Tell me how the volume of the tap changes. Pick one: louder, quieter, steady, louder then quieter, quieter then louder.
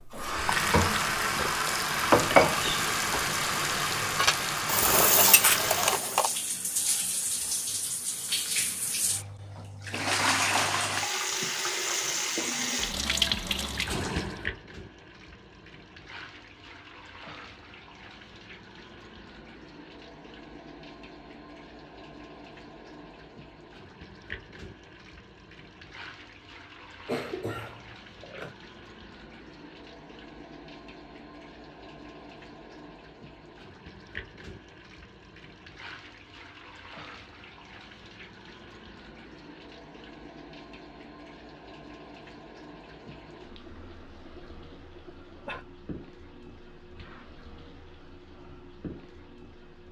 quieter.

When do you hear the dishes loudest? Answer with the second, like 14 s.
2 s.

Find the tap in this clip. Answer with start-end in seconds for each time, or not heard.
0.0-49.8.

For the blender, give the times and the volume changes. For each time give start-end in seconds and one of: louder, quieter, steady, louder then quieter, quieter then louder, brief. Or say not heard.
not heard.